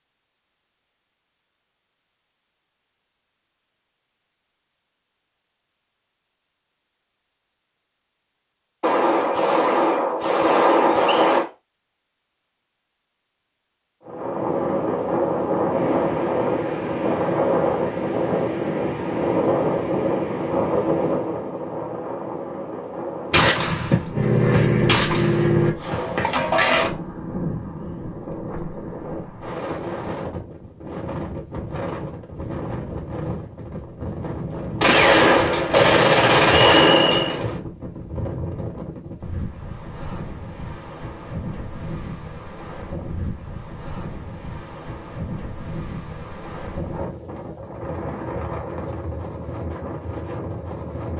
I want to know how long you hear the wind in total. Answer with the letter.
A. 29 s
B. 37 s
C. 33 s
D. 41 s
B.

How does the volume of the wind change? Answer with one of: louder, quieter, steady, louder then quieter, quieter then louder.
quieter.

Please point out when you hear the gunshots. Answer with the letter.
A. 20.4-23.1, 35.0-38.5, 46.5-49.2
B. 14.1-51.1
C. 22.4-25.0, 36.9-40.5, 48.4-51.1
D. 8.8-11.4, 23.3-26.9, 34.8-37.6
D.